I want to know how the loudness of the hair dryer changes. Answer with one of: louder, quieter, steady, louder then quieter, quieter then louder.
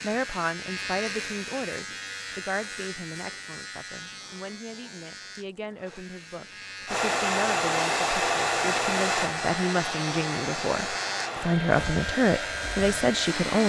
quieter.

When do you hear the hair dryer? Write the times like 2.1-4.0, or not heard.
6.8-13.6.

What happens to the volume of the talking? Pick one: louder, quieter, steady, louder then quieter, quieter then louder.
quieter then louder.